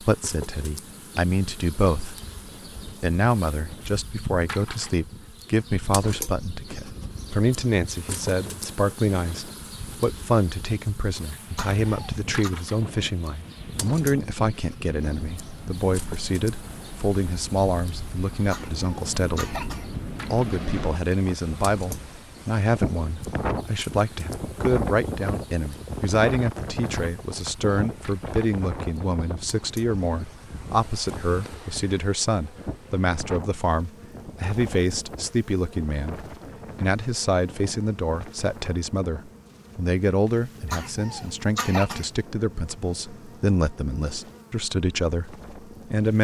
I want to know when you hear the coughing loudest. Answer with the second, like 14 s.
42 s.